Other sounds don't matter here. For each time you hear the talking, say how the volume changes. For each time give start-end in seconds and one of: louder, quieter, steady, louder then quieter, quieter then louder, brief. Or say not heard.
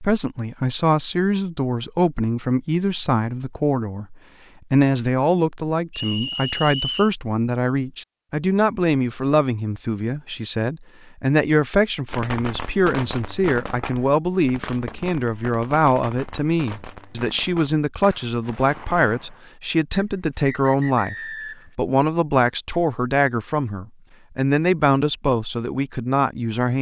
0.0-26.7 steady.